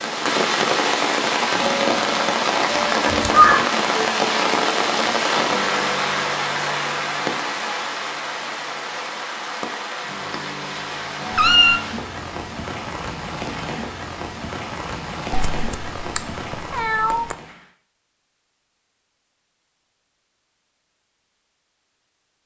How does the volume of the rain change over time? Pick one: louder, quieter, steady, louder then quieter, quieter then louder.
quieter.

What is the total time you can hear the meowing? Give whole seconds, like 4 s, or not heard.
3 s.